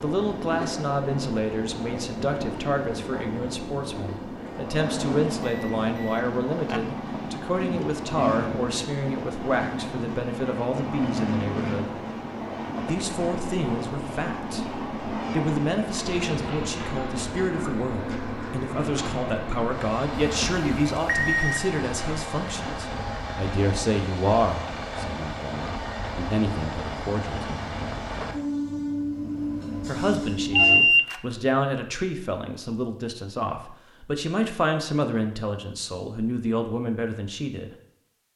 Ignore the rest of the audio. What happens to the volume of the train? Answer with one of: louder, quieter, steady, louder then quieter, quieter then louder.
steady.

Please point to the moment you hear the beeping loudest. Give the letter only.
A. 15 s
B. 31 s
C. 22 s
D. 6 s
B.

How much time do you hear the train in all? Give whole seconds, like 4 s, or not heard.
31 s.